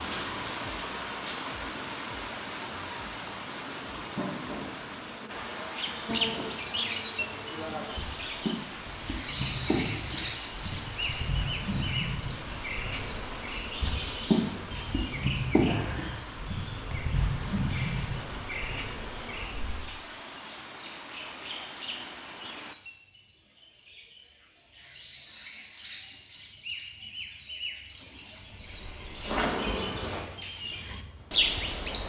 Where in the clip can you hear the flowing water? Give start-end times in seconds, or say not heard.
0.0-22.8.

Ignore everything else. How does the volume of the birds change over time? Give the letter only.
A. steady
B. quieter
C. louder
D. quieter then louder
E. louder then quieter
D.